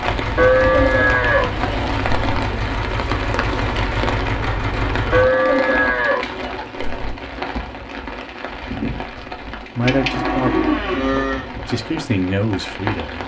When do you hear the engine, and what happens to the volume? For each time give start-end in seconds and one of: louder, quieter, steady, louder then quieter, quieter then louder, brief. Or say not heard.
0.0-5.3 steady.